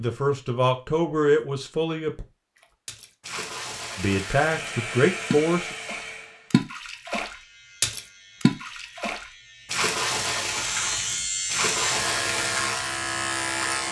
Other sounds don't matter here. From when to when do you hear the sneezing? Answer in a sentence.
You can't hear the sneezing here.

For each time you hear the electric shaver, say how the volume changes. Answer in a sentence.
You can hear the electric shaver from 7.2 to 13.8 s, getting louder.